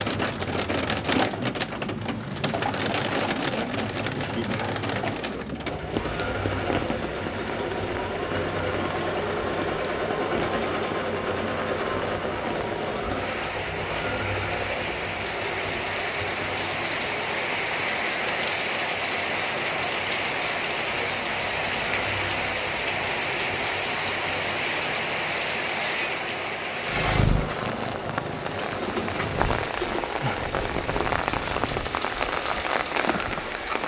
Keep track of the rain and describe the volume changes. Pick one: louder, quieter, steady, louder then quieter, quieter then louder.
quieter then louder.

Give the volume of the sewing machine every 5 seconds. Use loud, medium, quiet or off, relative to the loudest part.
medium, loud, loud, medium, medium, medium, medium.